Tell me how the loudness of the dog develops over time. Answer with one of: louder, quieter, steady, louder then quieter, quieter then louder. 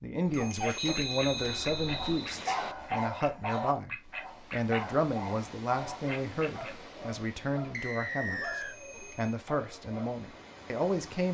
louder then quieter.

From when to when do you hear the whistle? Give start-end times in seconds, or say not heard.
0.8-2.8, 7.7-8.8.